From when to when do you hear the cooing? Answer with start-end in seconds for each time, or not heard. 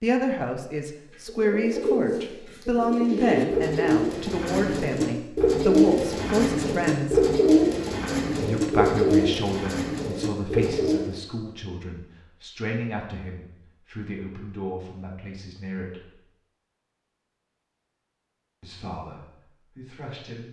1.2-11.1.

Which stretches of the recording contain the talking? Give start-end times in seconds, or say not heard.
0.0-7.3, 8.3-16.2, 18.6-20.4.